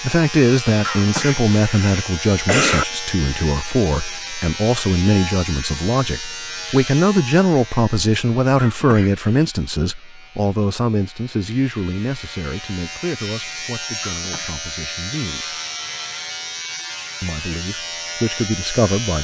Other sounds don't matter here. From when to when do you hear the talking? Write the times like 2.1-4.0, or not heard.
0.0-15.6, 17.2-19.1.